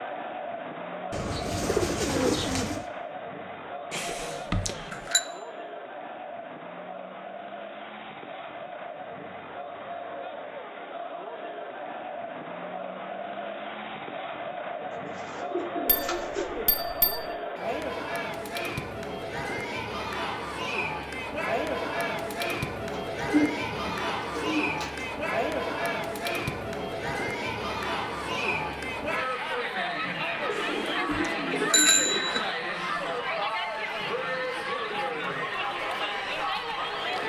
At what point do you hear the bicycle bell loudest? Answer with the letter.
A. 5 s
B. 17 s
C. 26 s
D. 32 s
D.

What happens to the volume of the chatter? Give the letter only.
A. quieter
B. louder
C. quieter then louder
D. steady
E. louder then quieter
B.